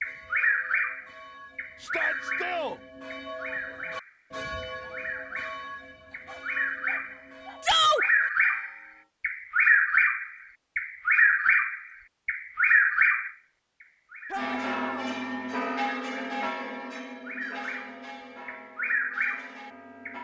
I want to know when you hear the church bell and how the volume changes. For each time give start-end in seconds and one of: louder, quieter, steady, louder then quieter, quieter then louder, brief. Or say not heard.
0.0-9.1 louder then quieter
14.3-20.2 quieter.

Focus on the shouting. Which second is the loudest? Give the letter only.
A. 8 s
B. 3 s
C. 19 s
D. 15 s
A.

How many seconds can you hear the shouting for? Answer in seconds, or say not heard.
2 s.